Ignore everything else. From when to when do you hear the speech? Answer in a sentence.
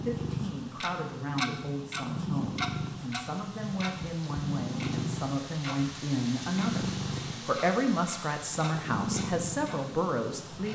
The speech can be heard from 0.0 to 10.7 s.